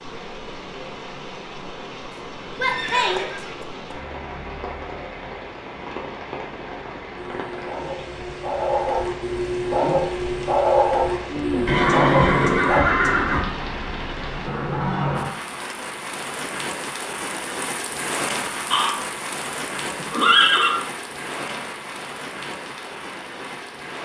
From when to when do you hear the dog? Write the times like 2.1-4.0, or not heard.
7.2-12.8.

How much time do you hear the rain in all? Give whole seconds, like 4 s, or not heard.
24 s.